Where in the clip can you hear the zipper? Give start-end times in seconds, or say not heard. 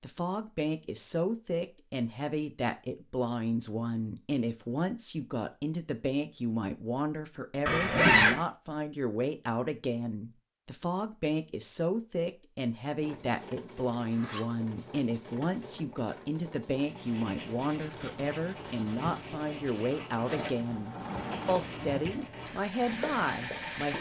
7.7-8.4, 14.0-15.5.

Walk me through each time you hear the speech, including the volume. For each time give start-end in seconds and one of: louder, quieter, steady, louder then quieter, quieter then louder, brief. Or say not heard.
0.0-23.9 steady.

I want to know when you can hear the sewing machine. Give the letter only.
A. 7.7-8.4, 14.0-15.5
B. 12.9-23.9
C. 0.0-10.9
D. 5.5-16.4
B.